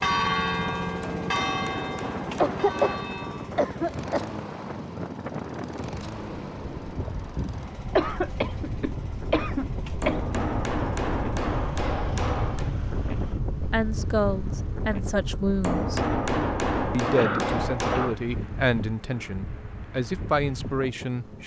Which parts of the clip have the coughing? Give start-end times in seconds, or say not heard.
2.4-4.2, 8.0-10.4, 17.1-18.1.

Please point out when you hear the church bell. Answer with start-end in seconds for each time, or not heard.
0.0-3.5.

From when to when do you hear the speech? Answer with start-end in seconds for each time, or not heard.
13.7-16.0, 16.9-21.4.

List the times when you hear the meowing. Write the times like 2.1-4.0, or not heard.
not heard.